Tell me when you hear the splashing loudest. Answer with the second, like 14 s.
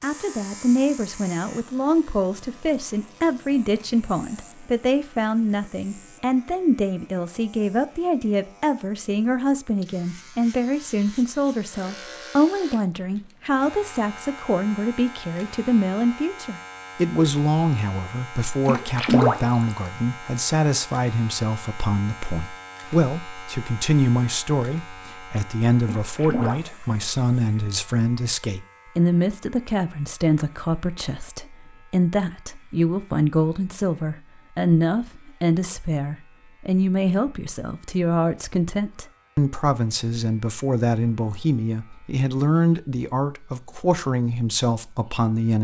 19 s.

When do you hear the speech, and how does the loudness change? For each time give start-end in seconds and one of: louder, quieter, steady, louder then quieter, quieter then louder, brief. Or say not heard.
0.0-45.6 steady.